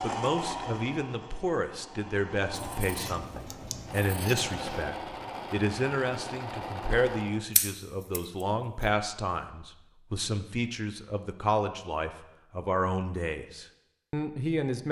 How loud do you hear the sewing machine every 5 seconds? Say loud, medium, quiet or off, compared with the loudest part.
loud, loud, off.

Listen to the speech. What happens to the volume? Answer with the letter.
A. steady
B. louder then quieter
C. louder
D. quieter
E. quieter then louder
A.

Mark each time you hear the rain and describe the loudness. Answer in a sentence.
You can't hear the rain here.